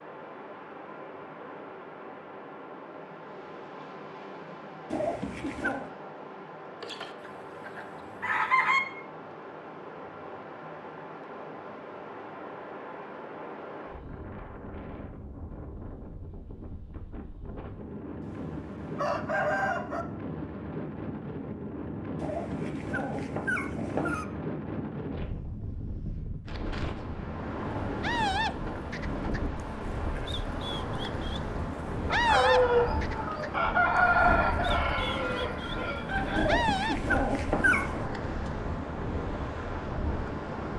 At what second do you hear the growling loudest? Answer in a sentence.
The loudest moment of the growling is at 38 seconds.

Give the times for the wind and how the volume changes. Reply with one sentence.
You can hear the wind from 0.0 to 40.7 s, getting louder.